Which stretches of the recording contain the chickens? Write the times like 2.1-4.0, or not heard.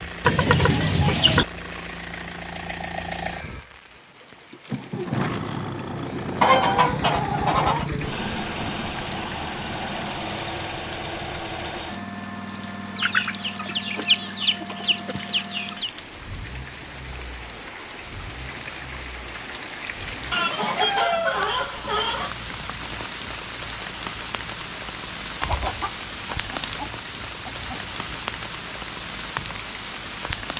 0.2-1.4, 6.4-7.9, 12.9-15.9, 20.3-22.3, 25.4-28.2.